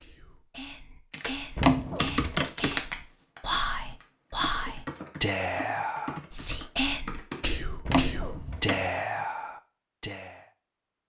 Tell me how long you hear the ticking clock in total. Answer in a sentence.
The ticking clock can't be heard in this clip.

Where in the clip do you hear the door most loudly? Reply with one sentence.
The volume of the door peaks at 2 seconds.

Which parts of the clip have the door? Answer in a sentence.
You can hear the door from 1.6 to 2.5 s and from 7.8 to 8.8 s.